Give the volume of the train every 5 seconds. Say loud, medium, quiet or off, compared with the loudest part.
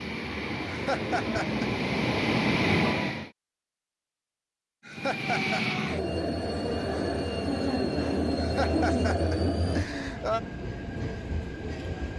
loud, loud, medium.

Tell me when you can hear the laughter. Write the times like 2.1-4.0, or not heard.
0.7-1.6, 4.8-5.6, 8.3-10.4.